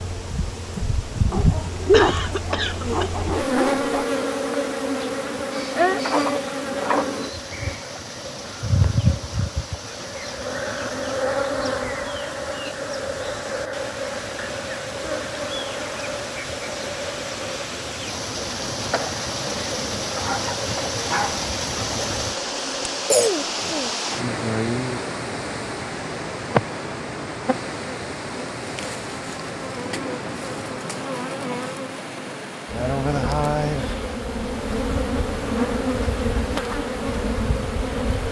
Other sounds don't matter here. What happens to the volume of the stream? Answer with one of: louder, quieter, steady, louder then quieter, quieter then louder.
louder then quieter.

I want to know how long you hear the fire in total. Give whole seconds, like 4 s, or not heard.
not heard.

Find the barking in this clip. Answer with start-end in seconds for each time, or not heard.
1.3-4.1, 20.1-21.4.